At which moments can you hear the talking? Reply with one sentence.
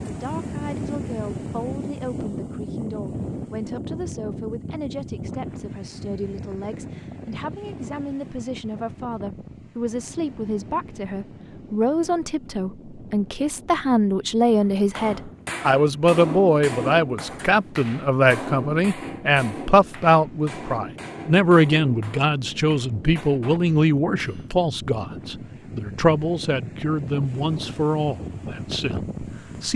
The talking can be heard from 0.1 to 29.7 s.